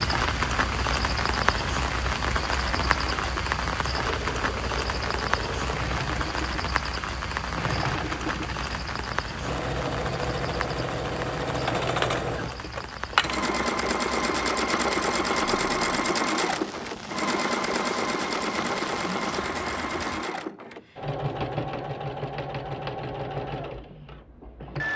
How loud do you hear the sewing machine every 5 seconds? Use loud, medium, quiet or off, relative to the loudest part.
medium, medium, loud, loud, medium.